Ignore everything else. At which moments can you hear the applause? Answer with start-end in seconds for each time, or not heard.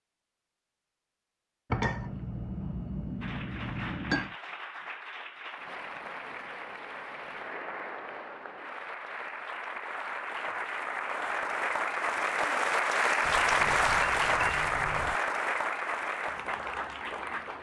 3.2-17.5.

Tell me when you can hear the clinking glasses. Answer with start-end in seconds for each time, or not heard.
1.7-4.3, 13.2-15.2.